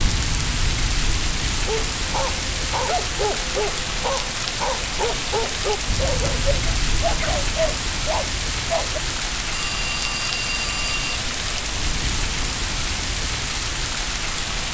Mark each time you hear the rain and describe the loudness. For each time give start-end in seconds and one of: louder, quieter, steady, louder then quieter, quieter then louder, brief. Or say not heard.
0.0-14.6 steady.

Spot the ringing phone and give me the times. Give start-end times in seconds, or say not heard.
9.5-11.2.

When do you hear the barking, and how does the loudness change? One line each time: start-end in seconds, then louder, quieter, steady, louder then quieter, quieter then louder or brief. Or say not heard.
1.6-9.0 steady.